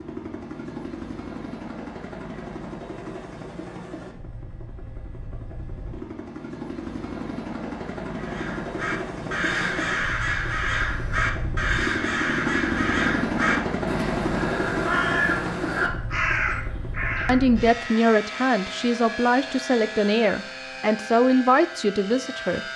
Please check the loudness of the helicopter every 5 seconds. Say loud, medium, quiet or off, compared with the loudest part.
medium, medium, loud, medium, medium.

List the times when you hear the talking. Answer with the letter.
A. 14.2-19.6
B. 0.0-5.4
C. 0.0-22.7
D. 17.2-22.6
D.